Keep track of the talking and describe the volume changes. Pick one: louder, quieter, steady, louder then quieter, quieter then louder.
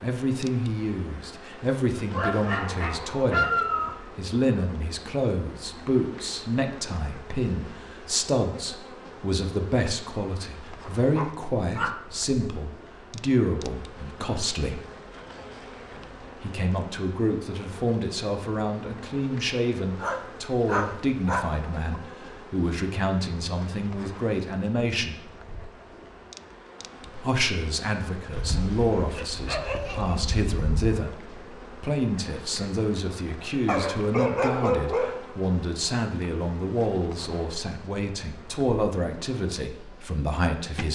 steady.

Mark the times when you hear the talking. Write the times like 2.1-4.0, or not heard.
0.0-14.8, 16.4-25.1, 27.1-40.9.